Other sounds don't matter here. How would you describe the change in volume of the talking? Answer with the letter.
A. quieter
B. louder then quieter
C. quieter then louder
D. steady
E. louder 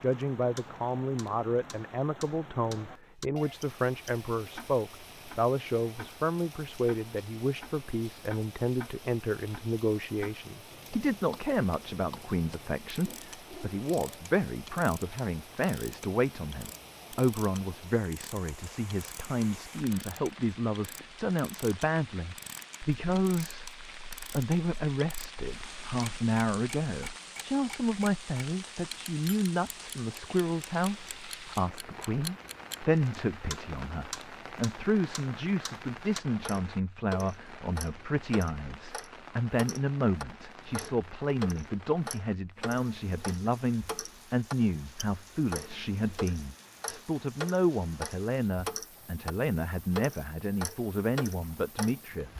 D.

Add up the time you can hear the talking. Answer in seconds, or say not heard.
52 s.